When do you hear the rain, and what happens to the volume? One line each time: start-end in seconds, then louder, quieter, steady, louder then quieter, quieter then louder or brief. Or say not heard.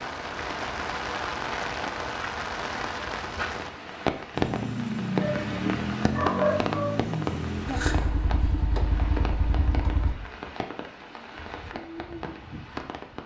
0.0-13.2 quieter.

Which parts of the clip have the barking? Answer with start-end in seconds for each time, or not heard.
5.2-7.0.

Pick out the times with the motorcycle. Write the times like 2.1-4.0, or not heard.
4.3-10.2.